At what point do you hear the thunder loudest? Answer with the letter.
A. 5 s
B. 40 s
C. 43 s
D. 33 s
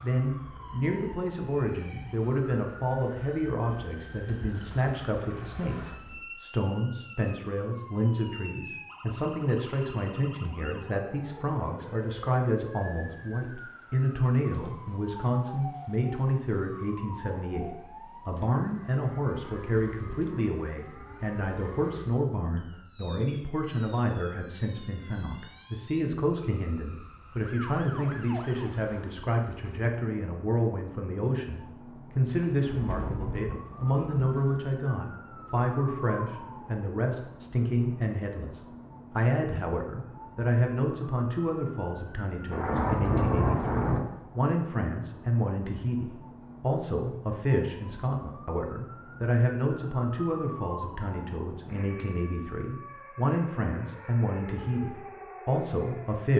C.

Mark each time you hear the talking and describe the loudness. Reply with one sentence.
You can hear the talking from 0.0 to 56.3 s, at a steady volume.